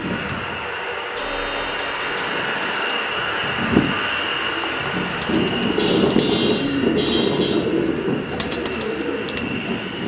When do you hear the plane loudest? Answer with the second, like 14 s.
6 s.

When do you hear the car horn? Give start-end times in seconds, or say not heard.
1.1-2.5, 5.8-7.5.